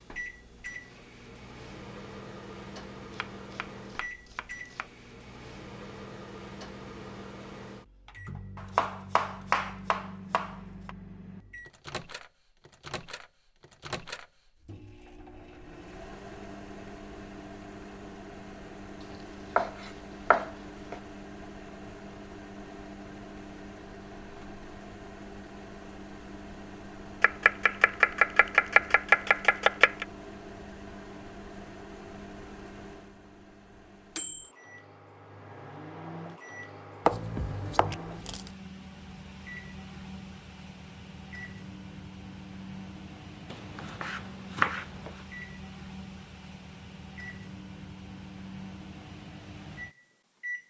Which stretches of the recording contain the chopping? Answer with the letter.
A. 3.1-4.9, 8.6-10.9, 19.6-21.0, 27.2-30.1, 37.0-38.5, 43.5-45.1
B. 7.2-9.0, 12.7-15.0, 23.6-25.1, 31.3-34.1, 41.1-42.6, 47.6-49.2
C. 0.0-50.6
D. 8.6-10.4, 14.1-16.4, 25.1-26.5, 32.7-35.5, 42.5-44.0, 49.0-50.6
A.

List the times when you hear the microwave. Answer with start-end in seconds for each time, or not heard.
0.0-50.6.